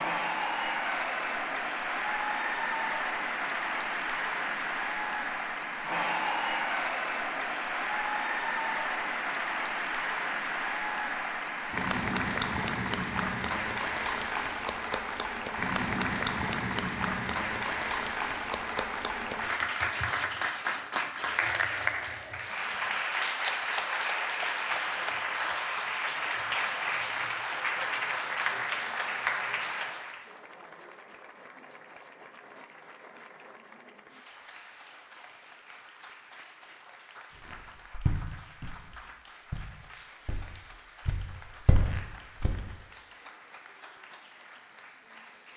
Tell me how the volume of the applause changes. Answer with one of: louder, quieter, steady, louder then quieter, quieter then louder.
quieter.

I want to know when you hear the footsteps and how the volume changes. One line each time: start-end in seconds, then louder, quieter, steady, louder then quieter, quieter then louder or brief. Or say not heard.
37.5-42.5 quieter then louder.